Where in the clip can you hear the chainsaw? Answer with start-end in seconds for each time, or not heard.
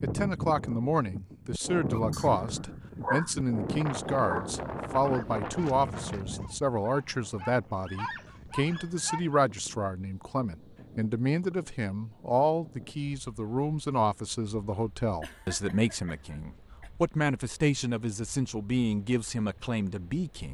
not heard.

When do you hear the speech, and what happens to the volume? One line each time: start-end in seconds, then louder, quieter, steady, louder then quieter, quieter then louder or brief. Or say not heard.
0.0-20.4 steady.